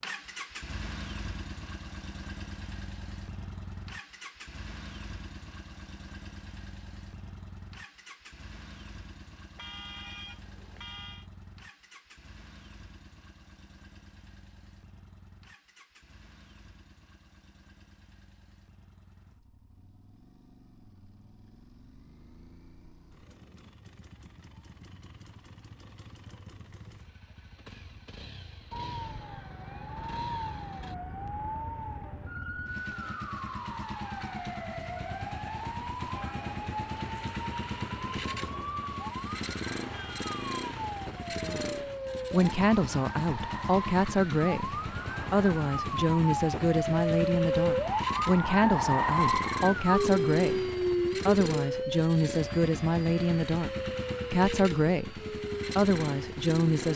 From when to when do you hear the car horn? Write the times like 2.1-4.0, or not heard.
9.6-11.2, 39.9-40.6.